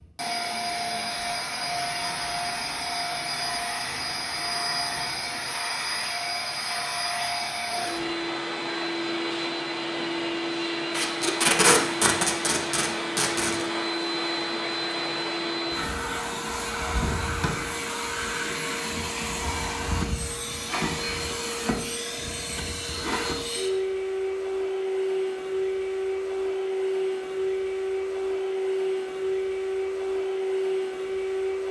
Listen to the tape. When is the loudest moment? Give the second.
12 s.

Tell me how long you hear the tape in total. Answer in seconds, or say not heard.
3 s.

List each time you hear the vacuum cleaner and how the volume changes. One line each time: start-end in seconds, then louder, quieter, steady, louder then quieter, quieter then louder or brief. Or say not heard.
0.0-31.6 steady.